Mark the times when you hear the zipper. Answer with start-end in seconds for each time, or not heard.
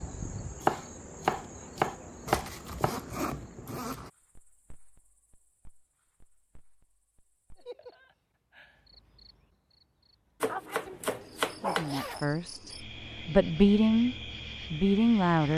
2.2-4.1, 11.8-12.3.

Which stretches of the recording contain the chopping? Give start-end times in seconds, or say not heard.
0.6-3.0, 10.4-11.9.